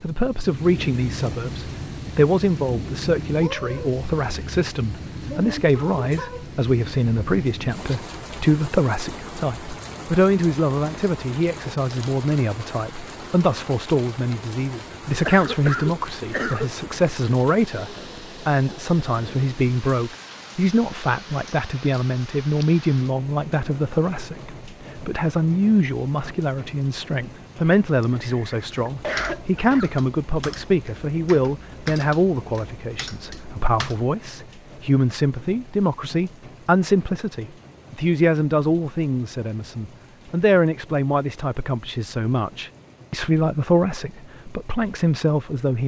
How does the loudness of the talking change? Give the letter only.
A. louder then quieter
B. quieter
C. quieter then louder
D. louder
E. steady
E.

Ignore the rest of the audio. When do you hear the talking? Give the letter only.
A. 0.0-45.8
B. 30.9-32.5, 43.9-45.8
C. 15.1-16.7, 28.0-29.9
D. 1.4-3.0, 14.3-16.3
A.